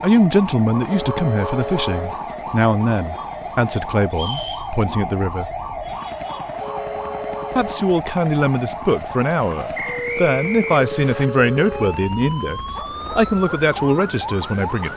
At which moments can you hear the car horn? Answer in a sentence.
You can hear the car horn from 0.8 to 2.2 s, from 6.5 to 7.9 s and from 10.7 to 12.0 s.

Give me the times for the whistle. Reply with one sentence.
You can hear the whistle from 4.1 to 4.7 s and from 9.8 to 11.3 s.